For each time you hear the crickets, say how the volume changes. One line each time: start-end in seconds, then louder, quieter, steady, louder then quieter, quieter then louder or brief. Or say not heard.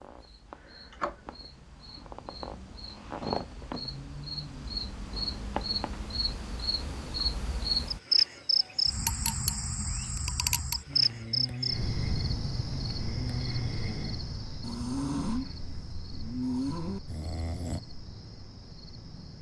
0.0-19.3 louder then quieter.